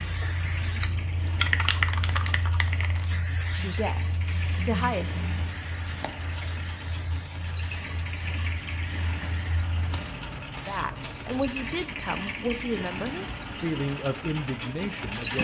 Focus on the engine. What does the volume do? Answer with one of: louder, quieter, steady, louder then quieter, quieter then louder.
louder.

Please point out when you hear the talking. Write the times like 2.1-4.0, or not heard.
3.5-5.2, 10.7-15.3.